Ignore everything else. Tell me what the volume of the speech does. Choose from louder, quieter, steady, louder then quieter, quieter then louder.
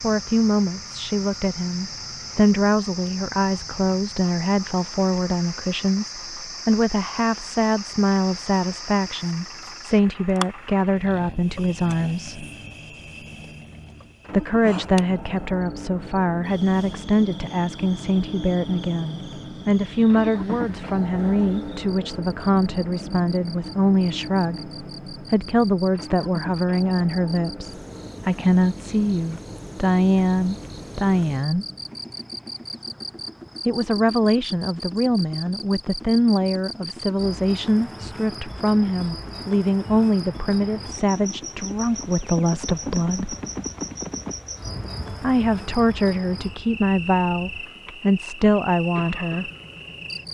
steady.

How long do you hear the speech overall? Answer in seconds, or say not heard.
44 s.